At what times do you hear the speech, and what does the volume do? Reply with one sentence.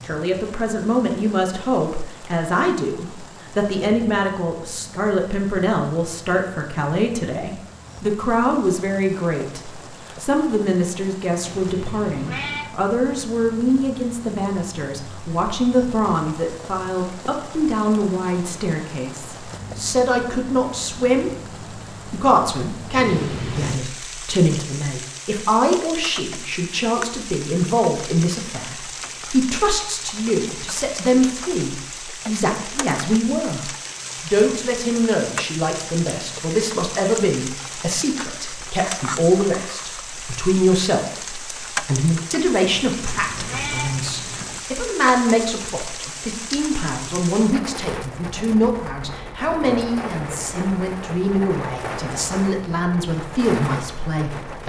You can hear the speech from 0.0 to 21.3 s, at a steady volume; and from 22.1 to 54.6 s, at a steady volume.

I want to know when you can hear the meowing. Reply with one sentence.
You can hear the meowing from 11.4 to 12.7 s, from 22.9 to 23.8 s and from 42.6 to 44.6 s.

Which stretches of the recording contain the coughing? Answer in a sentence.
You can't hear the coughing here.